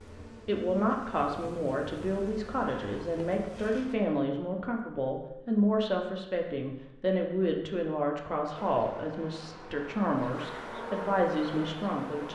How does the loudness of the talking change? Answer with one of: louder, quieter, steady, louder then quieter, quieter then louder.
steady.